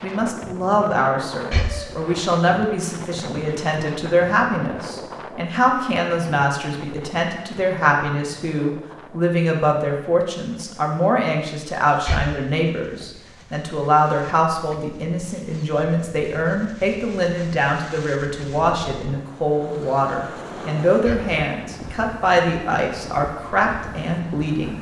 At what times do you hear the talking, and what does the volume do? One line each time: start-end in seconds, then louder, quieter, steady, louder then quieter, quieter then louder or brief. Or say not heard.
0.0-24.7 steady.